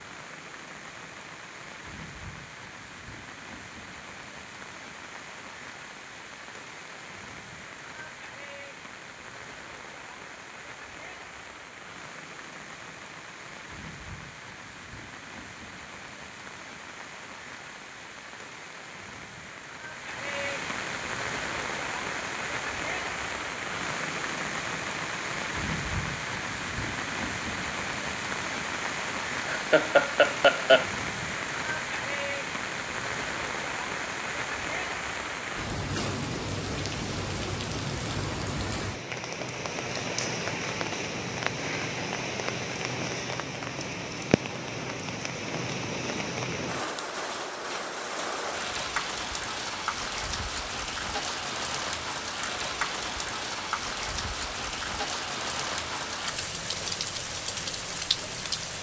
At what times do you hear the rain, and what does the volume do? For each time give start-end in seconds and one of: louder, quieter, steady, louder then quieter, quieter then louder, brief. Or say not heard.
0.0-58.7 louder.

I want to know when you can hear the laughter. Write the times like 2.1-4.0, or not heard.
29.4-30.9.